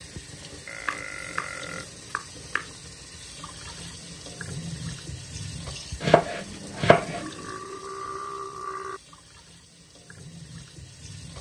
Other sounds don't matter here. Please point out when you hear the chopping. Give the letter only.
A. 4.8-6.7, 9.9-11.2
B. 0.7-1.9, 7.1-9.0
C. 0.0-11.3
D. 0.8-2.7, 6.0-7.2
D.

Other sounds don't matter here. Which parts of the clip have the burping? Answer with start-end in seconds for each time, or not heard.
0.7-1.9, 7.1-9.0.